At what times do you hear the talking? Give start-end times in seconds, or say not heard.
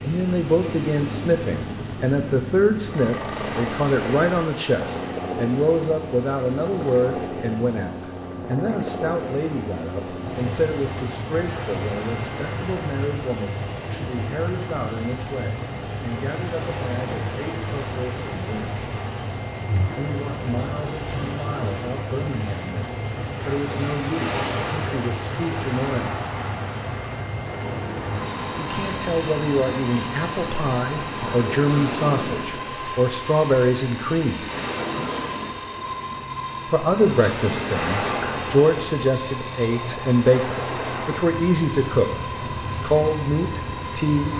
0.0-18.8, 19.9-26.2, 28.6-34.5, 36.7-42.2, 42.8-44.3.